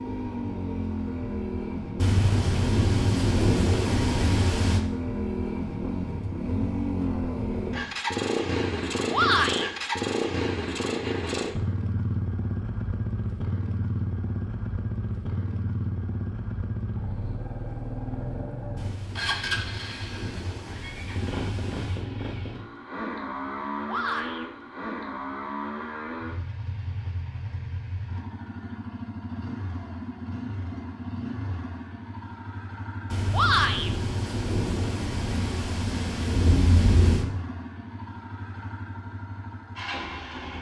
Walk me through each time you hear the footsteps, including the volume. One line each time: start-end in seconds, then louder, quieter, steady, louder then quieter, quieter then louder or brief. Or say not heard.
not heard.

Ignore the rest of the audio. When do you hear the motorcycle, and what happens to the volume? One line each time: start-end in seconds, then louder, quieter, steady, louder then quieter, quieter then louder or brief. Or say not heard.
0.0-40.5 quieter.